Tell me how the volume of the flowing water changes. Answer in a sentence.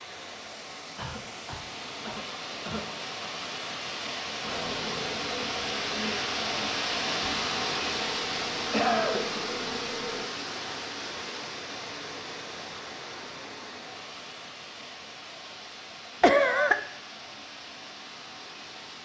The loudness of the flowing water goes up, then down.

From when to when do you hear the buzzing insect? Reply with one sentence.
You can hear the buzzing insect from 4.4 to 10.2 s.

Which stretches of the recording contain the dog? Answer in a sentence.
The dog can't be heard in this clip.